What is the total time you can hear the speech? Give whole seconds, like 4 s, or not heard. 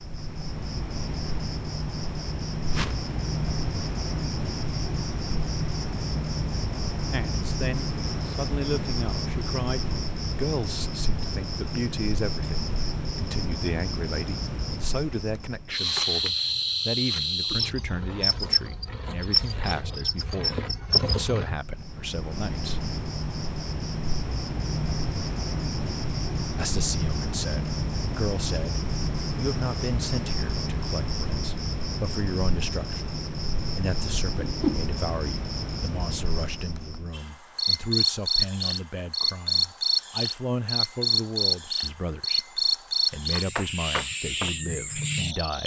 35 s.